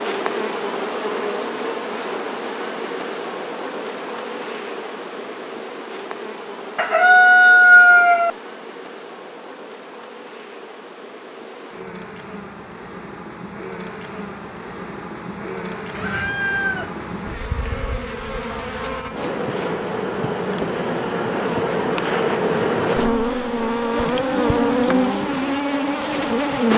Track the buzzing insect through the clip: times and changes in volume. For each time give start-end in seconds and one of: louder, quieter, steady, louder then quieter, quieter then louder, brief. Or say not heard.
0.0-26.7 quieter then louder.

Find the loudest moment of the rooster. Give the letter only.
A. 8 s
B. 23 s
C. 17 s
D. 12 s
A.